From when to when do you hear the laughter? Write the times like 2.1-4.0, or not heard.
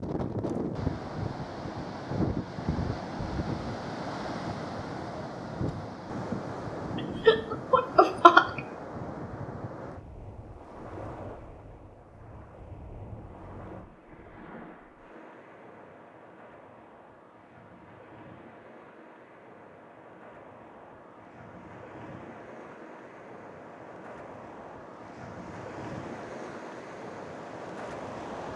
7.2-8.6.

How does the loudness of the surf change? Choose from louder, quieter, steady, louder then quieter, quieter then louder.
quieter then louder.